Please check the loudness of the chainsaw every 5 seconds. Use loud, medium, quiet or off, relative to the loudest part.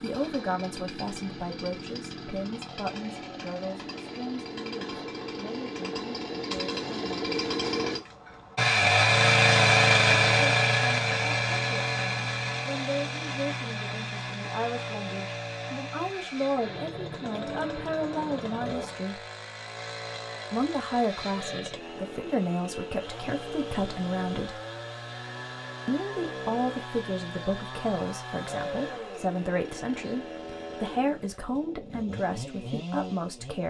quiet, loud, loud, quiet, quiet, quiet, quiet.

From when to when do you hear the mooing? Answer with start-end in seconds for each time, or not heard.
17.2-19.1.